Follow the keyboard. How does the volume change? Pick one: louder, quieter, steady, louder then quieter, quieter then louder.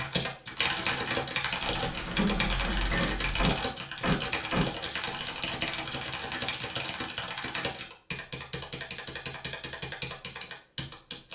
quieter.